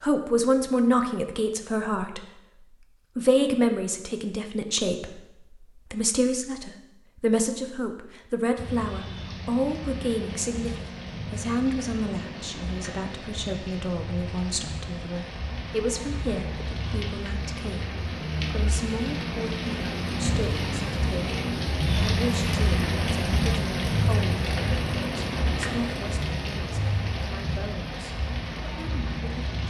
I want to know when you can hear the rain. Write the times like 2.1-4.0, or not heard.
8.6-29.6.